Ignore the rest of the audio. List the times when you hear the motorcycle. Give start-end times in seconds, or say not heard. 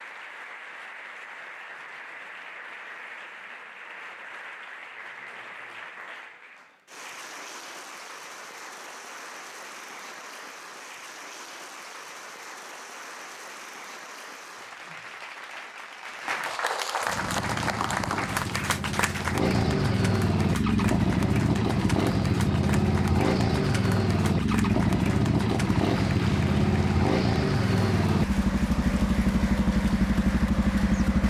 17.0-31.2.